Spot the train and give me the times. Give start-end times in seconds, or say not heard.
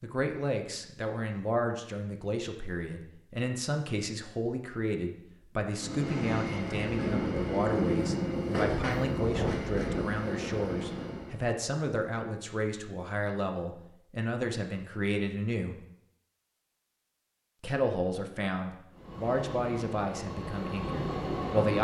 5.7-11.4, 18.9-21.7.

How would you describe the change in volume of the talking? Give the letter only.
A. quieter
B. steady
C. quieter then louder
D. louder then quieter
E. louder
B.